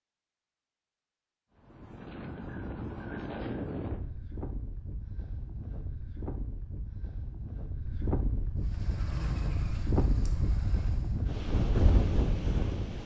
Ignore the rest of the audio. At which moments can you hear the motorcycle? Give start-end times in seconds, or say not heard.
8.6-11.3.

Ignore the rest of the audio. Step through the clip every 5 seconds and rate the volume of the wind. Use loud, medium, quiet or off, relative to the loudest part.
medium, medium, loud.